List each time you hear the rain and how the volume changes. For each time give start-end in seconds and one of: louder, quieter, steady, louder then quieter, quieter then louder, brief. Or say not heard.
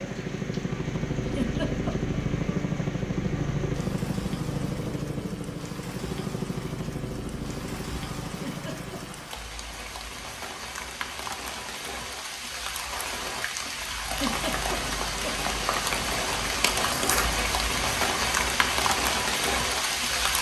0.0-20.3 louder.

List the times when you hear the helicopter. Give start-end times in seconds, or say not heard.
0.0-9.3.